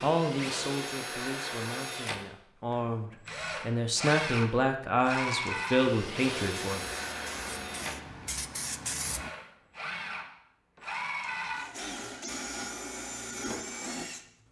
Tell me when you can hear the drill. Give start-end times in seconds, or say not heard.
0.0-14.2.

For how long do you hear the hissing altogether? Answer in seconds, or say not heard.
3 s.